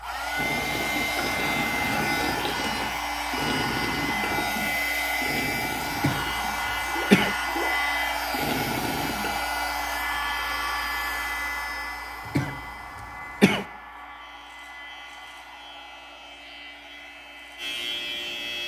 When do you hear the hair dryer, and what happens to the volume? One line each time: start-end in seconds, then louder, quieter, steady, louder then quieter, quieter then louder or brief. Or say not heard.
0.0-18.6 quieter.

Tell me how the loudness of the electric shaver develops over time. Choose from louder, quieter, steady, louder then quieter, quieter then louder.
louder.